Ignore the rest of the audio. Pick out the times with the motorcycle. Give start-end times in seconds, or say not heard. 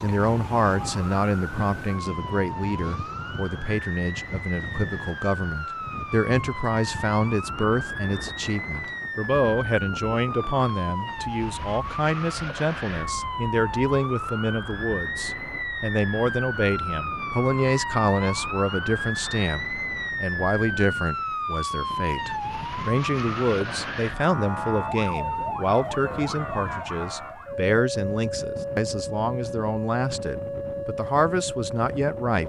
not heard.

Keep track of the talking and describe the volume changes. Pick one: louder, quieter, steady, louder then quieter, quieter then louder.
steady.